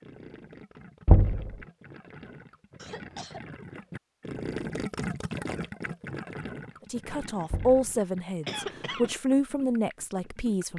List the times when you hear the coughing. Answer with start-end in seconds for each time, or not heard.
2.8-3.5, 8.4-9.1.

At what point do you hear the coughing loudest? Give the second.
9 s.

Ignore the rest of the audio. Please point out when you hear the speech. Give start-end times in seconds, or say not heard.
6.9-10.7.